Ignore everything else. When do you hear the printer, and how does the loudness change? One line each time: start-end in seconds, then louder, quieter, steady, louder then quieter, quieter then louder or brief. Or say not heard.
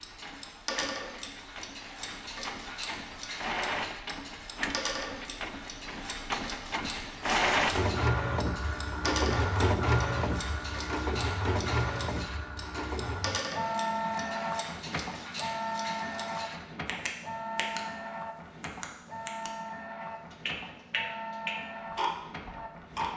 0.0-23.1 louder then quieter.